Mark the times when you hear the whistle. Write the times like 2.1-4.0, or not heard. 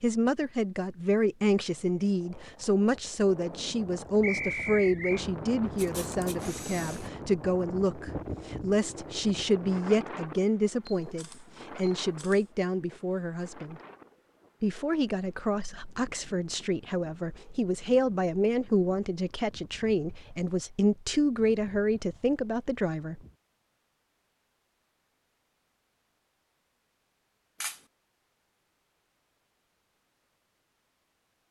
4.2-5.2.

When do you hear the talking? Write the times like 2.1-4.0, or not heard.
0.0-13.8, 14.6-23.2.